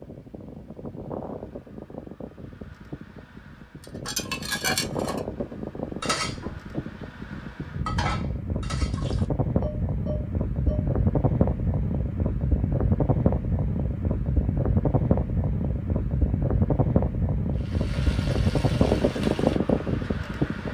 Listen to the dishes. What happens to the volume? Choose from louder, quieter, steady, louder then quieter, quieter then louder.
quieter.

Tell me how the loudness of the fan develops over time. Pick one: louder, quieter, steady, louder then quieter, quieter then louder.
louder.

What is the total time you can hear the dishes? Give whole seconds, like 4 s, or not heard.
7 s.